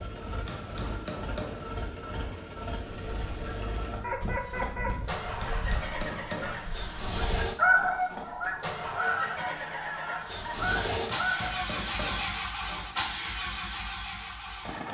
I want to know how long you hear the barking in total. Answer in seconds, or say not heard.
not heard.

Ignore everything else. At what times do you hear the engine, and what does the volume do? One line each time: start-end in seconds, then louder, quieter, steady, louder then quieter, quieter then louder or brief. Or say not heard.
0.0-14.8 louder.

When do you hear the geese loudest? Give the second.
8 s.